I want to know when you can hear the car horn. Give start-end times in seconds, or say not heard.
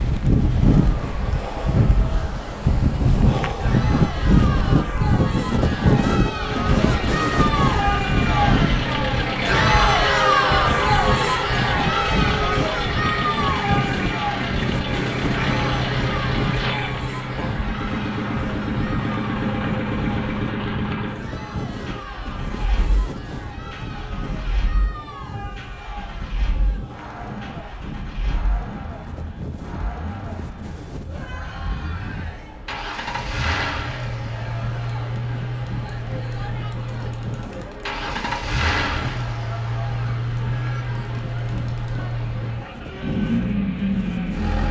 not heard.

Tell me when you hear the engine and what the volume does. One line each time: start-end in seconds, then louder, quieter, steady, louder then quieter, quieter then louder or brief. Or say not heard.
6.3-44.6 quieter then louder.